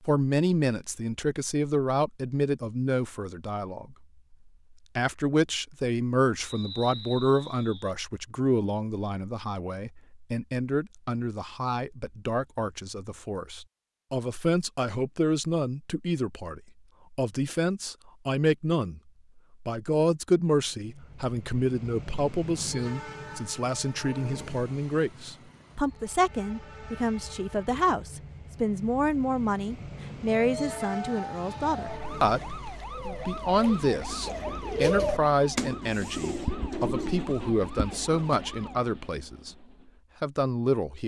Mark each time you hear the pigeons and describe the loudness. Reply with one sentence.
The pigeons can be heard from 32.8 to 38.5 s, getting louder then quieter.